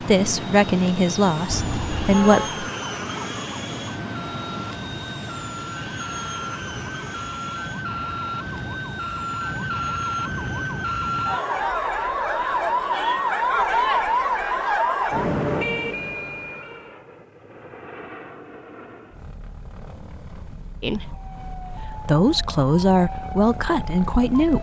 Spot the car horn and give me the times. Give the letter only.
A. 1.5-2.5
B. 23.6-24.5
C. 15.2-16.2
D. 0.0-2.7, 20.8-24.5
A.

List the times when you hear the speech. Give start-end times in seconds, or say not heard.
0.0-2.7, 20.8-24.5.